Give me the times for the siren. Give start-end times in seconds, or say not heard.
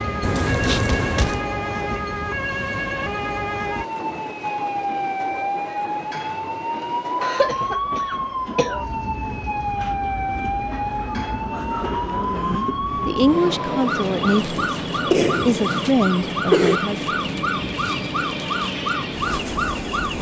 0.0-20.1.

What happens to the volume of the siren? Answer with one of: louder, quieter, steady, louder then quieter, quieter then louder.
steady.